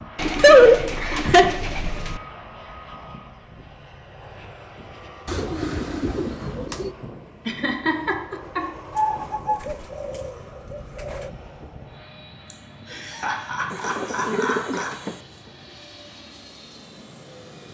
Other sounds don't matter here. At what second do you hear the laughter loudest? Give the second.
1 s.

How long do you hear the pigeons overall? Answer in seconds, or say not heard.
8 s.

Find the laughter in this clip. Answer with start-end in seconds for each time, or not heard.
0.4-1.5, 7.5-8.7, 12.5-14.9.